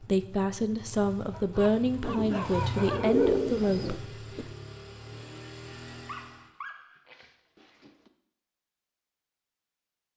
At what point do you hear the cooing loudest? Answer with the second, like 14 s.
3 s.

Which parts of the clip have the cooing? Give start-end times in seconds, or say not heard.
2.0-4.5.